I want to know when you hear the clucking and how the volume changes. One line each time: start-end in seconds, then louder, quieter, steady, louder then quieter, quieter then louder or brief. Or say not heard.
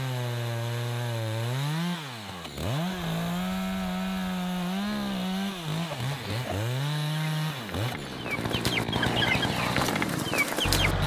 5.9-10.9 louder.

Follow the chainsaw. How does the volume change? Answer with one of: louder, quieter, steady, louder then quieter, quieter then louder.
steady.